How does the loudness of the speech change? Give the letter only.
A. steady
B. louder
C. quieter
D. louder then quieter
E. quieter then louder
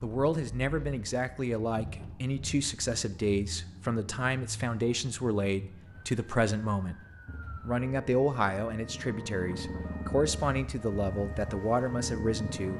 A.